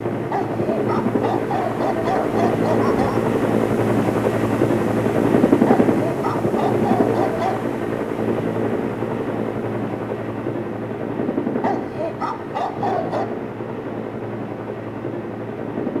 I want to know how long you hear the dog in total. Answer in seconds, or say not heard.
7 s.